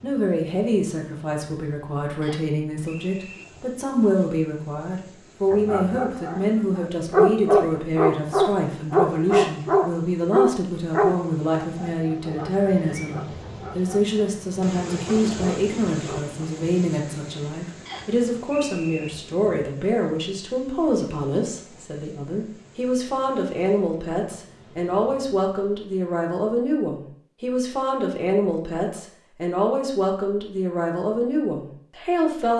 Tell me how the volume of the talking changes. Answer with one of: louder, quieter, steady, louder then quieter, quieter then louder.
steady.